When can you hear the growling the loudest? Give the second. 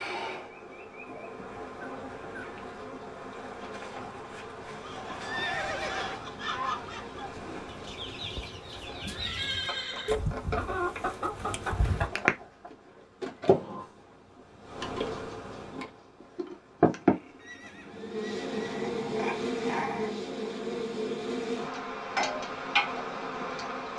20 s.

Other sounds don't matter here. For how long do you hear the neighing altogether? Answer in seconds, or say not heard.
5 s.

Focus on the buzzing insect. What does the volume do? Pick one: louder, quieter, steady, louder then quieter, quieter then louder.
louder.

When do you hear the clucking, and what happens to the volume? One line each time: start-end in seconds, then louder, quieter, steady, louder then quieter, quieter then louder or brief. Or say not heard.
4.8-12.7 louder.